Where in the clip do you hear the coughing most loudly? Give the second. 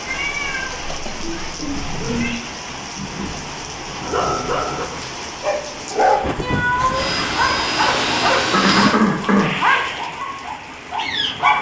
9 s.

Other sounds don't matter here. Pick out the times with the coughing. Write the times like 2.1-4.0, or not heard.
0.8-2.0, 8.5-9.6.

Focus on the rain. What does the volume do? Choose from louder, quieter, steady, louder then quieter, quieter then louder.
steady.